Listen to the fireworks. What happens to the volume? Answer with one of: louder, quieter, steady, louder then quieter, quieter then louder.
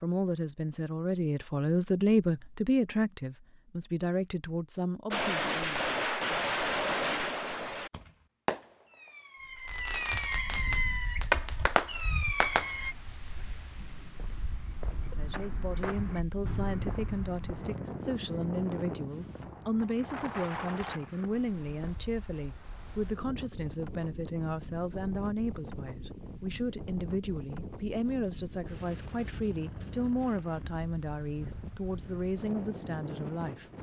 quieter then louder.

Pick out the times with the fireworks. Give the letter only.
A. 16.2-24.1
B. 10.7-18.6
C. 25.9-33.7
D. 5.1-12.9
D.